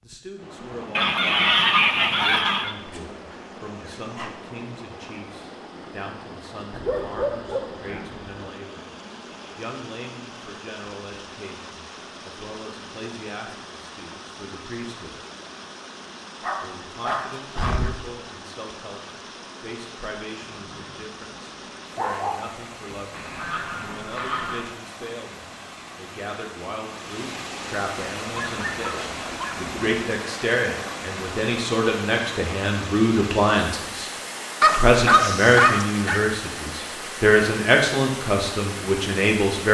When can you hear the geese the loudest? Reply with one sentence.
The volume of the geese peaks at 2 seconds.